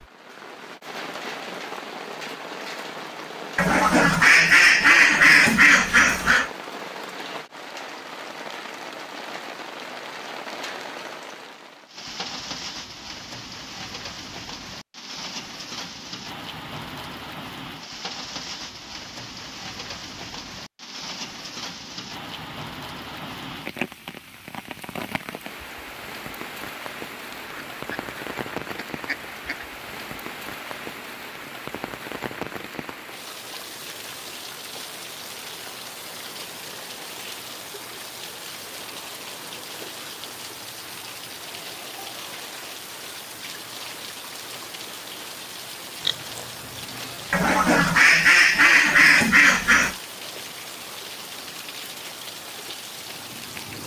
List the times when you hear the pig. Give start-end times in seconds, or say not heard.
46.0-47.5.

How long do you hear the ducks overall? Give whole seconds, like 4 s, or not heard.
8 s.